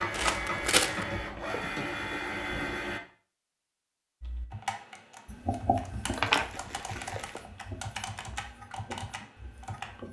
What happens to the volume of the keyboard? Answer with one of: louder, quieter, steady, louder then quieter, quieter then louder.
steady.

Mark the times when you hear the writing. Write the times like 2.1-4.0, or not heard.
5.2-10.0.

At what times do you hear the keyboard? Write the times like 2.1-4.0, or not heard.
4.2-10.0.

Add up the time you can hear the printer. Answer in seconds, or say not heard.
3 s.